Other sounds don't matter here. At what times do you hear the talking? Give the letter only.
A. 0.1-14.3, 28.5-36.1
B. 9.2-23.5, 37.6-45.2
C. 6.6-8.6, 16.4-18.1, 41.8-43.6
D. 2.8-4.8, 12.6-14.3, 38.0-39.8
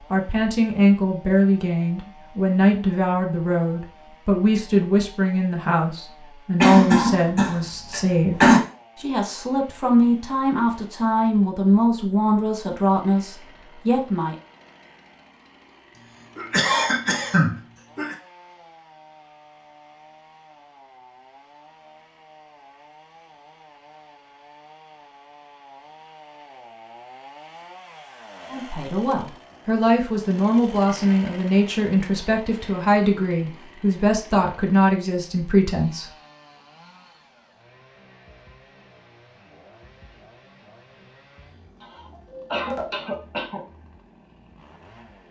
A.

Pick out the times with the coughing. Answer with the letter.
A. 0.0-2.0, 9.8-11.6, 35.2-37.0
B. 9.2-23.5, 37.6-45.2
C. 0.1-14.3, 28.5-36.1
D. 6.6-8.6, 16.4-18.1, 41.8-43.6
D.